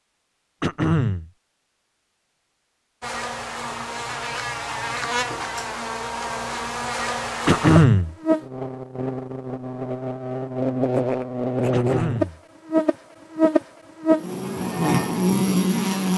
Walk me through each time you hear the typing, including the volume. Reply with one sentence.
The typing can't be heard in this clip.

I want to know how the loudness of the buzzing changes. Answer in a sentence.
The loudness of the buzzing goes up.